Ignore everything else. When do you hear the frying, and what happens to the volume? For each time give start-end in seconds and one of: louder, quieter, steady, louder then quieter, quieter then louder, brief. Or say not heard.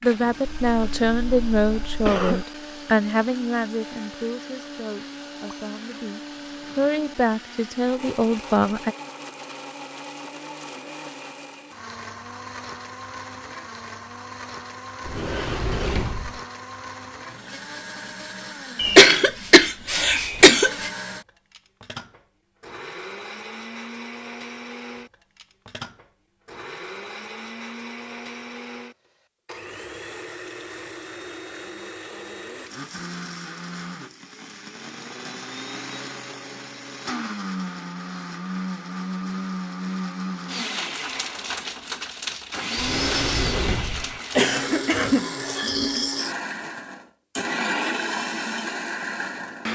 not heard.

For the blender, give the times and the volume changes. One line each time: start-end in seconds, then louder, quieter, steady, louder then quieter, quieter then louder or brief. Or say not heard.
0.0-49.7 louder.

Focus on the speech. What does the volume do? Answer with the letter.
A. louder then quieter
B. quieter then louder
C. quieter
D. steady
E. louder
B.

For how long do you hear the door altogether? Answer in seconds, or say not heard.
3 s.